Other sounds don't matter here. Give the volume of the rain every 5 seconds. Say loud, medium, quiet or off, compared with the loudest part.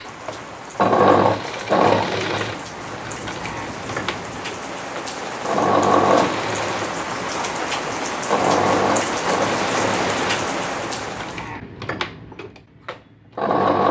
medium, loud, loud.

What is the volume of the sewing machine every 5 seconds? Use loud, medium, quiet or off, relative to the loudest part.
loud, loud, medium.